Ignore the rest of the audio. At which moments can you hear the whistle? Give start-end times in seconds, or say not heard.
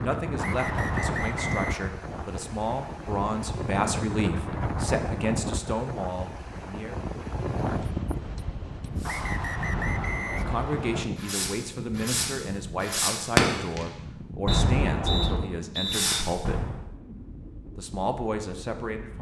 0.3-1.9, 9.1-11.1, 14.4-16.1.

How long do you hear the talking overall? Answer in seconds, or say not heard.
15 s.